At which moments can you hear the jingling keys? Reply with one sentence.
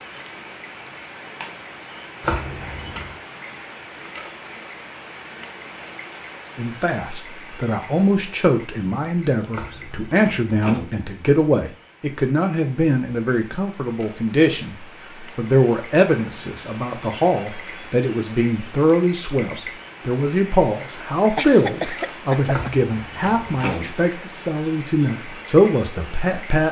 The jingling keys can be heard from 2.2 to 3.1 s, from 9.5 to 10.8 s and from 22.5 to 23.9 s.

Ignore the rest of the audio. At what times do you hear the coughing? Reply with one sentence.
You can hear the coughing from 21.4 to 22.8 s.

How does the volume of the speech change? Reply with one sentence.
The loudness of the speech stays about the same.